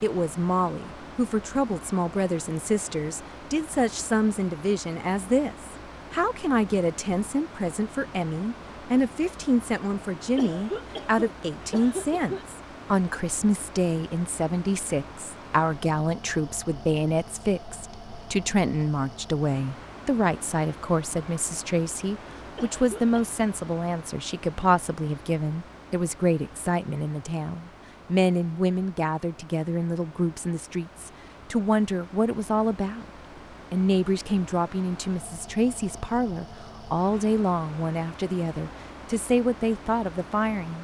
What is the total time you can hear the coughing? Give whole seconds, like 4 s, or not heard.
3 s.